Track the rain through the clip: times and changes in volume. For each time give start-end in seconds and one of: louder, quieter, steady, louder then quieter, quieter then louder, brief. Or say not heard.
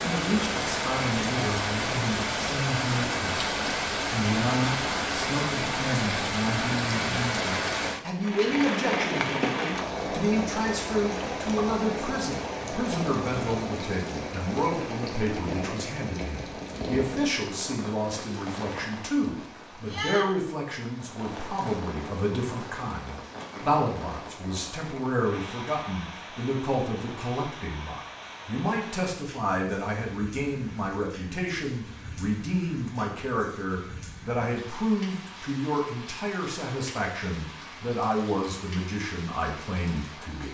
0.0-40.5 quieter.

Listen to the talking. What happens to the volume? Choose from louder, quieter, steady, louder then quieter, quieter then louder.
steady.